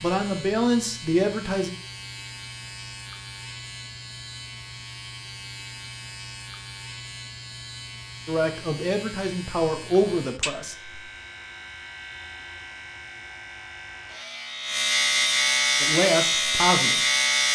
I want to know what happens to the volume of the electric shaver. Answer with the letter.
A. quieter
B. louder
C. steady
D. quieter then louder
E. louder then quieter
B.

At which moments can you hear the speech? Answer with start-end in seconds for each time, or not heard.
0.0-1.8, 8.2-10.9, 15.8-17.0.